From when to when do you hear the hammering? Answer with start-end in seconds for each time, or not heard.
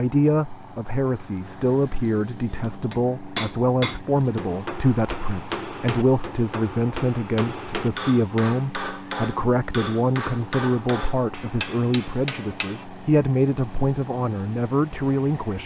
2.9-12.8.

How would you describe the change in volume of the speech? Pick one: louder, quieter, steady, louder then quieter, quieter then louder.
steady.